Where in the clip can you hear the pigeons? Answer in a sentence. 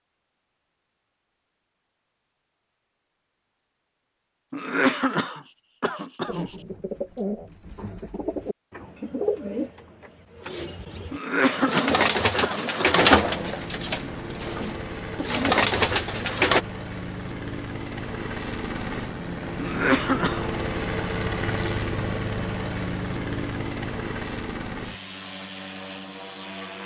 You can hear the pigeons from 6.2 to 16.6 s.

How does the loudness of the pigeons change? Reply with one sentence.
The volume of the pigeons goes up.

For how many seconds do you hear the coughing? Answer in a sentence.
You can hear the coughing for 5 seconds altogether.